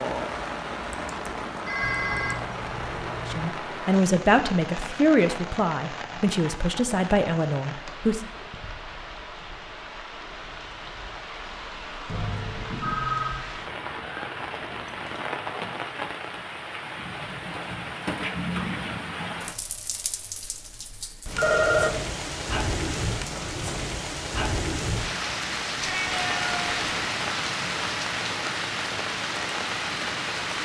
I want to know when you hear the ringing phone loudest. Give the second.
22 s.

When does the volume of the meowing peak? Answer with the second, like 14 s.
26 s.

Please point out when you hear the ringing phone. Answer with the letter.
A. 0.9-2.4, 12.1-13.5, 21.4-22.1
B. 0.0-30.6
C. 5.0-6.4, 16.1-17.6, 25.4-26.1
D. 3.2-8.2
A.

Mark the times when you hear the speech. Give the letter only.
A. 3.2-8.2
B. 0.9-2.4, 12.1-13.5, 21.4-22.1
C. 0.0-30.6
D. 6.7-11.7
A.